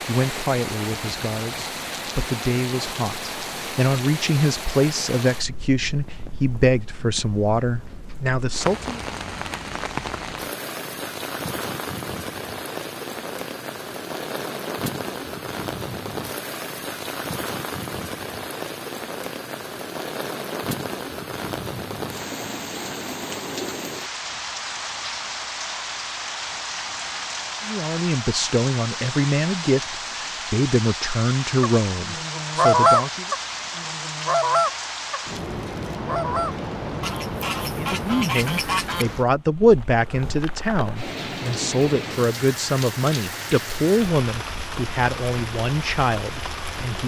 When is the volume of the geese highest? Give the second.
33 s.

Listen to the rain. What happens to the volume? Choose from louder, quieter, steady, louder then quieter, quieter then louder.
steady.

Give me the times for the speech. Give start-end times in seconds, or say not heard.
0.1-9.0, 27.6-33.2, 37.8-47.0.